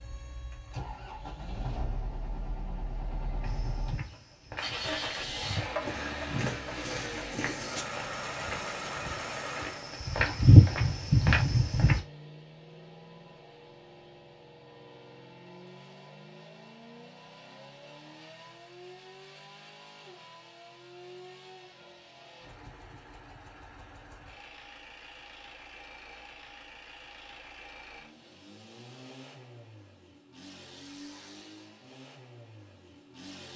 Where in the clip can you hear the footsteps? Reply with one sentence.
The footsteps can be heard from 3.4 to 12.0 s.